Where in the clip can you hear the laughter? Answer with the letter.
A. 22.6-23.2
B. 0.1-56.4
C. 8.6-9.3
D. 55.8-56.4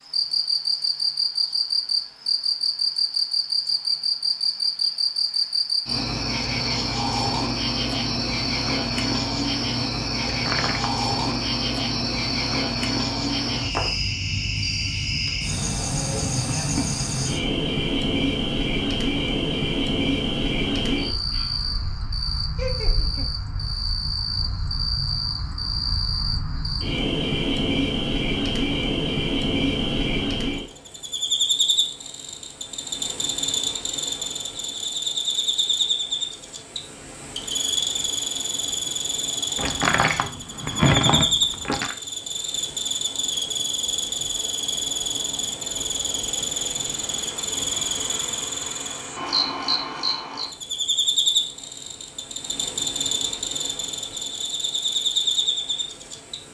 A.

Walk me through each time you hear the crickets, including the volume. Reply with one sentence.
The crickets can be heard from 0.1 to 56.4 s, at a steady volume.